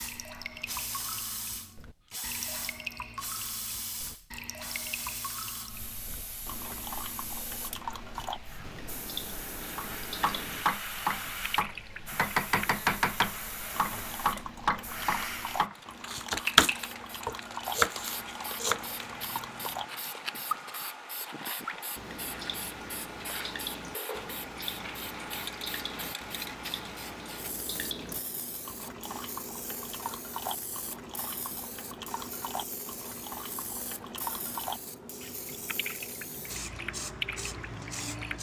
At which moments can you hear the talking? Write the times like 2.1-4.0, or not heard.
not heard.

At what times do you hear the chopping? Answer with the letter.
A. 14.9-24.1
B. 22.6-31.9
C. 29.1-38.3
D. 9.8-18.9
D.